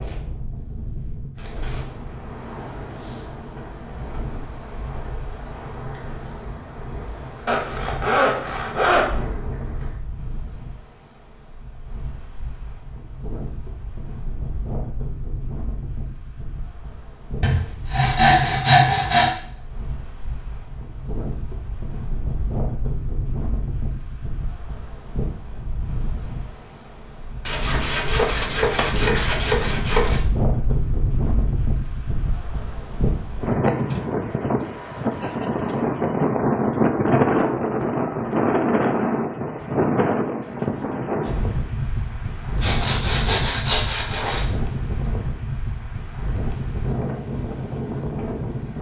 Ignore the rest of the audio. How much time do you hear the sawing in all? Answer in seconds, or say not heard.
8 s.